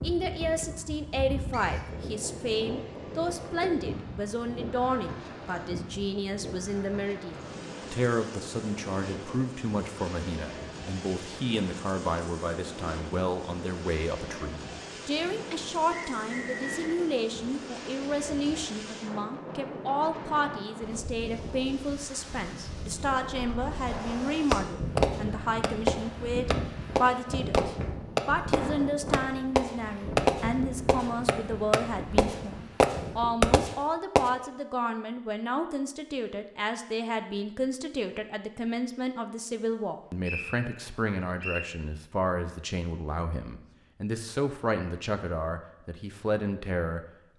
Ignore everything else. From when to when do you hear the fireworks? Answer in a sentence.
The fireworks can be heard from 23.9 to 34.2 s.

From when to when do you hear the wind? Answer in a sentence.
The wind can be heard from 0.0 to 33.6 s.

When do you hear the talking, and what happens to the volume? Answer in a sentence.
The talking can be heard from 0.0 to 47.0 s, at a steady volume.